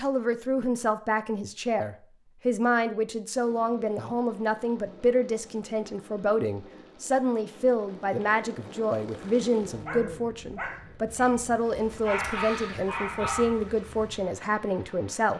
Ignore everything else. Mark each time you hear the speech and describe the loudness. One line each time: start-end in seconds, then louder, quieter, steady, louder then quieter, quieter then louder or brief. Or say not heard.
0.0-15.3 steady.